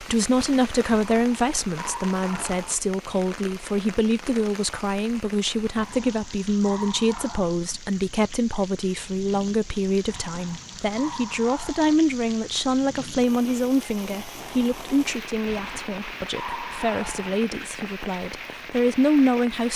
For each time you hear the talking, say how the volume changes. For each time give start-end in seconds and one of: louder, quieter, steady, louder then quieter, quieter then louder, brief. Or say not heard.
0.0-19.7 steady.